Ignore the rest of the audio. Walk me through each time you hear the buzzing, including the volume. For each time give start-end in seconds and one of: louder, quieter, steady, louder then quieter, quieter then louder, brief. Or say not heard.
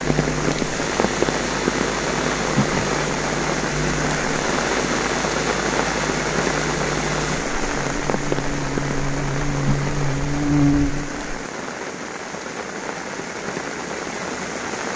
0.0-11.4 louder.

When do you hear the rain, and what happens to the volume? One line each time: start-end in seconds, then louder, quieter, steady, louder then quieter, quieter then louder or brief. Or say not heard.
0.0-14.9 quieter.